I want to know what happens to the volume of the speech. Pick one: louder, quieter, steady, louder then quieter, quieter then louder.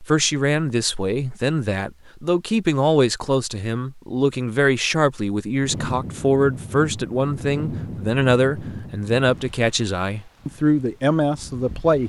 steady.